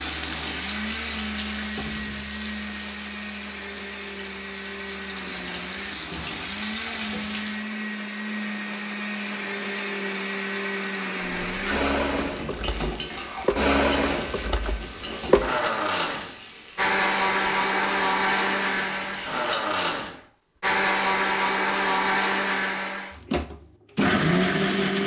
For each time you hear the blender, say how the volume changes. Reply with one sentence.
The blender can be heard from 0.0 to 25.0 s, getting louder.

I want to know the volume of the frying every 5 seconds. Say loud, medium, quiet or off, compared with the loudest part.
loud, loud, loud, loud, off.